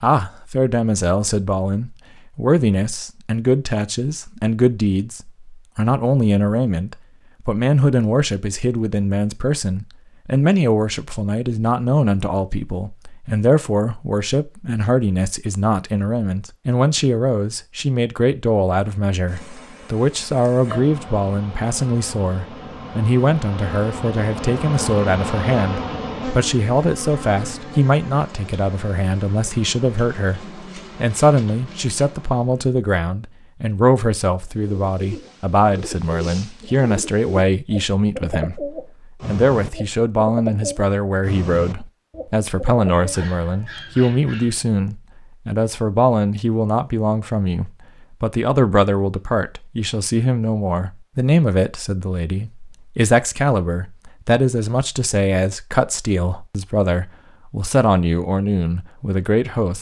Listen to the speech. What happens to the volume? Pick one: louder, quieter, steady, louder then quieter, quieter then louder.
steady.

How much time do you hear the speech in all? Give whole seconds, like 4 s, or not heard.
60 s.